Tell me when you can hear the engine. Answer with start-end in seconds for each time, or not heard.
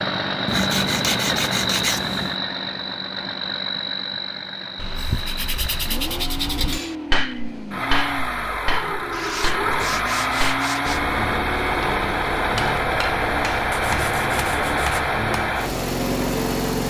0.0-16.8.